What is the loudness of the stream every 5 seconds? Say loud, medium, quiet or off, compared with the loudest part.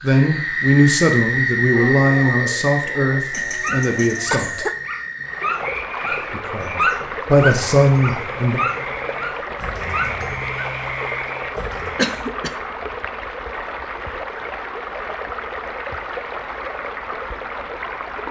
off, loud, loud, loud.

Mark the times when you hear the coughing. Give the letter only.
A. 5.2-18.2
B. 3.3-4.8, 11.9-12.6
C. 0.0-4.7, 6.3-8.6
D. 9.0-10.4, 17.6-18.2
B.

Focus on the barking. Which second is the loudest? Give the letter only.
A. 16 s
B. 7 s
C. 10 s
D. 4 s
B.